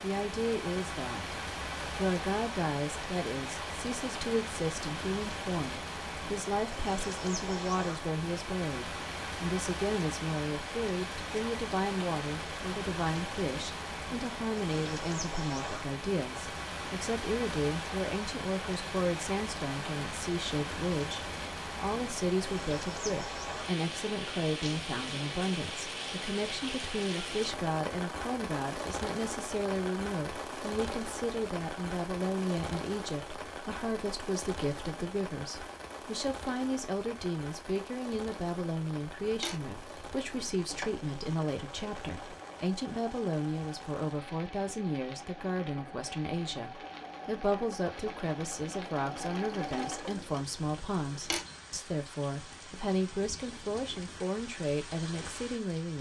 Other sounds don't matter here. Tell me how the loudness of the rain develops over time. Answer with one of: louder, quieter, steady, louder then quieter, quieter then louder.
quieter.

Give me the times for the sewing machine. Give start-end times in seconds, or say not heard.
39.1-51.5.